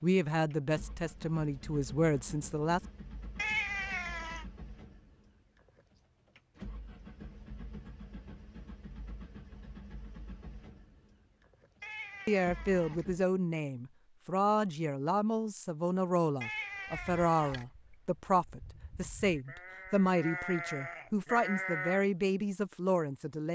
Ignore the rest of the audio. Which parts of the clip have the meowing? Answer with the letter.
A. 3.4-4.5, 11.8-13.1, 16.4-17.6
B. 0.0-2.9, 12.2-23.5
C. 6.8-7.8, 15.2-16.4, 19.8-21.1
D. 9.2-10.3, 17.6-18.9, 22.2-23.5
A.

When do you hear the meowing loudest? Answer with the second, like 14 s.
4 s.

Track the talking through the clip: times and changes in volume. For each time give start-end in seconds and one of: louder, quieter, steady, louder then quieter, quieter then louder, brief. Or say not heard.
0.0-2.9 brief
12.2-23.5 steady.